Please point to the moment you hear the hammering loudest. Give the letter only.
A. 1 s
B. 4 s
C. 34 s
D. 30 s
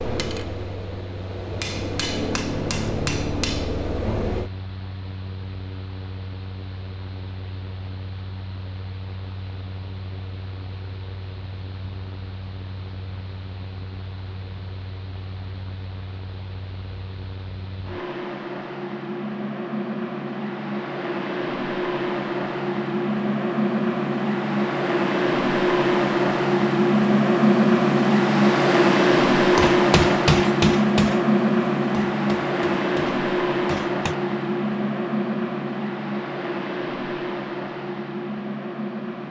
D.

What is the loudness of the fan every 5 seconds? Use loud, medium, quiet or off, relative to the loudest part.
quiet, quiet, quiet, quiet, medium, loud, loud, medium.